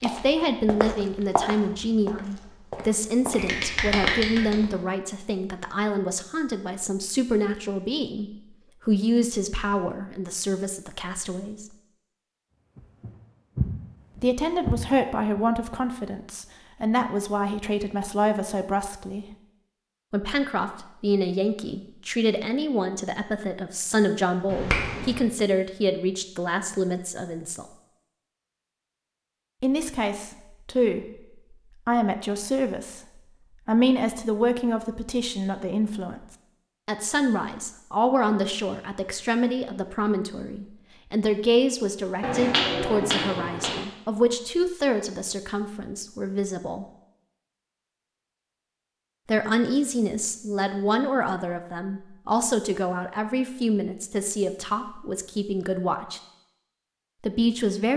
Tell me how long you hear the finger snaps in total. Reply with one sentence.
The finger snaps can be heard for 4 seconds in total.